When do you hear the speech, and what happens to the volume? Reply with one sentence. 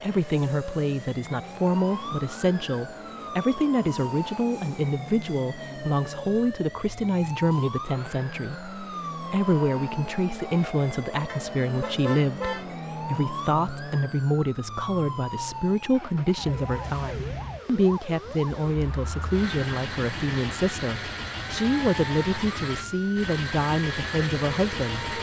The speech can be heard from 0.0 to 25.1 s, at a steady volume.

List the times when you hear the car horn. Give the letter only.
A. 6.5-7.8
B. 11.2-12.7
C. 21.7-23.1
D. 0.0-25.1
B.